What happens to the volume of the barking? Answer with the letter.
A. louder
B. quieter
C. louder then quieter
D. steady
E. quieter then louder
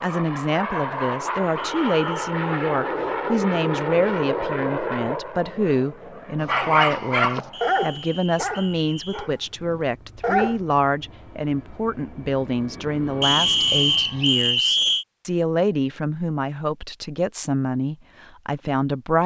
B.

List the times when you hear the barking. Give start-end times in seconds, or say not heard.
6.4-10.6.